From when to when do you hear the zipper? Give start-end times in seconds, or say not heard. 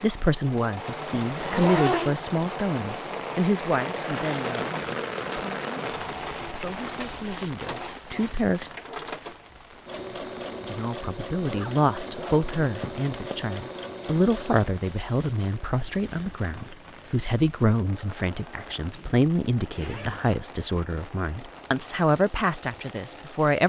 1.3-2.1, 11.4-13.3, 18.9-20.2.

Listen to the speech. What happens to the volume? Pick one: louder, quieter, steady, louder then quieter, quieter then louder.
quieter then louder.